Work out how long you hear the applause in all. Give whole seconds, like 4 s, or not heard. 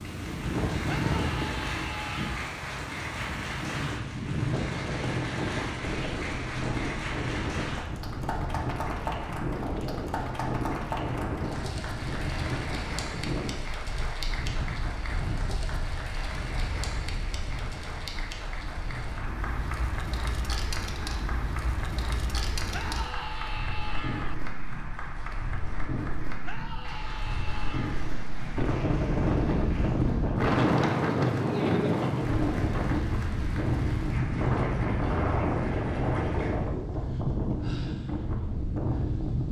37 s.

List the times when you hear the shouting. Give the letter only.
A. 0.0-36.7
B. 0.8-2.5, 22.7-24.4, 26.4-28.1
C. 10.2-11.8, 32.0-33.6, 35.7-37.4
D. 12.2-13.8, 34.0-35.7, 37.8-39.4
B.